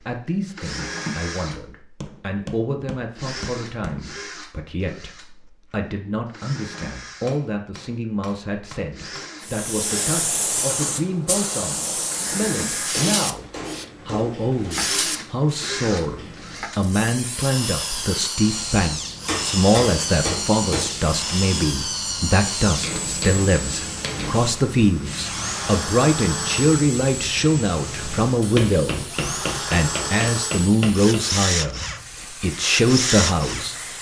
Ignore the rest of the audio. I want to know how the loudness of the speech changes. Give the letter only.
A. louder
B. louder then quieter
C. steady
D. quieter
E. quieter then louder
A.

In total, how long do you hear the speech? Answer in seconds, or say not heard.
34 s.